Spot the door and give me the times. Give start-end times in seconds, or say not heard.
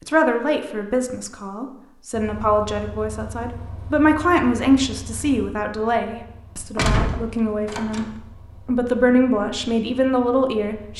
6.8-8.1.